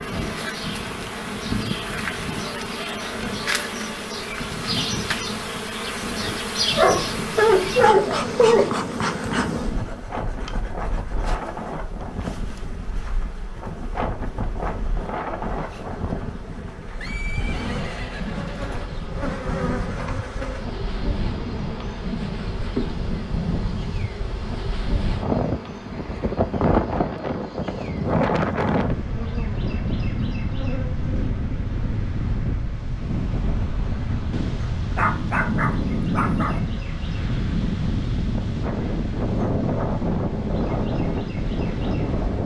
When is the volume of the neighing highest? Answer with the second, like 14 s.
17 s.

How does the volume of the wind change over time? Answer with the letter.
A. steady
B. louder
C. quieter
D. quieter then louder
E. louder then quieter
B.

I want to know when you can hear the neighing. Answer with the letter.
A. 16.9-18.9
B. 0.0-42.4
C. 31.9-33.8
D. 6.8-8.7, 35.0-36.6
A.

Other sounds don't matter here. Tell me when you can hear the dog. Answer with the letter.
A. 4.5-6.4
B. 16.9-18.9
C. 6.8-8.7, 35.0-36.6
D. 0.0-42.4
C.